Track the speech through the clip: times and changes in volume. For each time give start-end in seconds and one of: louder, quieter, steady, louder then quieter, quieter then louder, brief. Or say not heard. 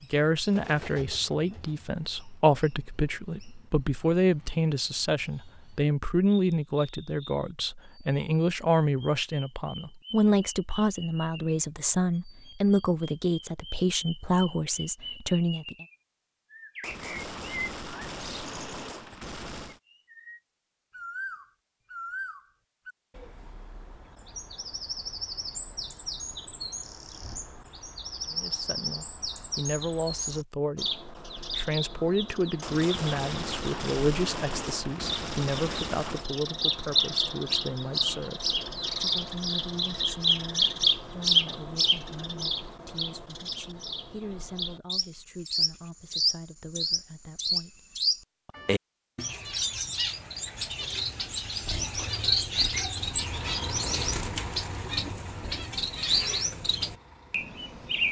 0.0-15.8 steady
28.2-47.8 quieter.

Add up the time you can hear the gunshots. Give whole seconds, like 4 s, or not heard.
7 s.